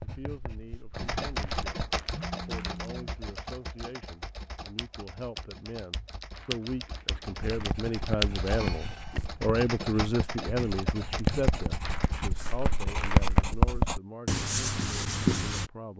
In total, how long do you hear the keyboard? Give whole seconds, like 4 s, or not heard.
11 s.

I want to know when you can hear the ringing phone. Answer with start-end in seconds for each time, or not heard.
2.1-3.1.